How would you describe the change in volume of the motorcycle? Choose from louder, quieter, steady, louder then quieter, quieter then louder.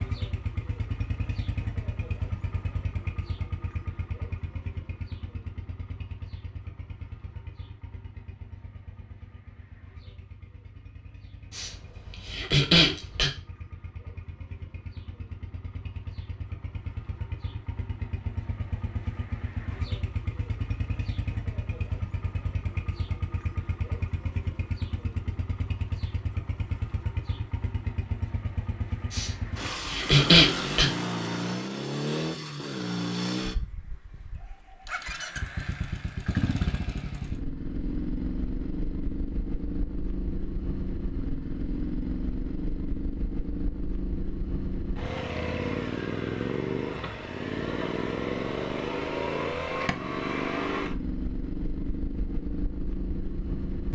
louder.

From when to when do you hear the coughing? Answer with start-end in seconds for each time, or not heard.
11.5-13.3, 29.1-30.9.